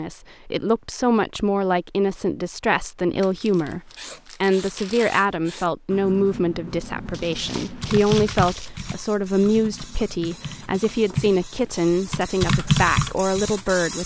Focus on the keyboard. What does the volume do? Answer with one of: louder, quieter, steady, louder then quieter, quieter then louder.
quieter then louder.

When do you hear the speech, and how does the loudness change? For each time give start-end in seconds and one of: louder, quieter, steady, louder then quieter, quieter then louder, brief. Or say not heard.
0.0-14.0 steady.